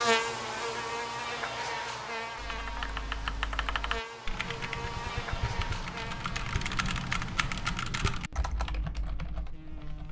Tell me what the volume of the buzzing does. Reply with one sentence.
The loudness of the buzzing goes down.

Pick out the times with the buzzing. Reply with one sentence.
You can hear the buzzing from 0.0 to 10.0 s.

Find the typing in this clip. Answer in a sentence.
The typing can be heard from 2.4 to 10.0 s.